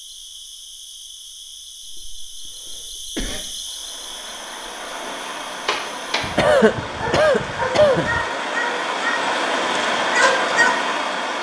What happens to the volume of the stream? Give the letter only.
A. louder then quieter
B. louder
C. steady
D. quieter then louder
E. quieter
B.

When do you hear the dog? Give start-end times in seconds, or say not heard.
5.0-10.8.